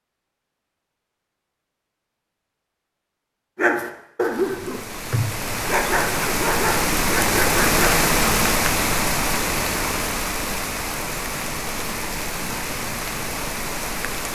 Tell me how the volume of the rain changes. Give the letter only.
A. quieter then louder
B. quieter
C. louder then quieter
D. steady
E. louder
C.